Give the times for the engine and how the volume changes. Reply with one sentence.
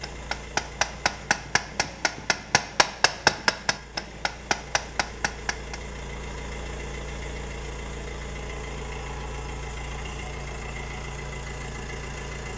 You can hear the engine from 0.0 to 12.5 s, getting louder.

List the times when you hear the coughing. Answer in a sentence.
You can't hear the coughing here.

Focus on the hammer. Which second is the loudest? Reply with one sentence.
The loudest moment of the hammer is at 3 seconds.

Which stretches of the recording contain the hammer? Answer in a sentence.
The hammer can be heard from 0.0 to 5.8 s.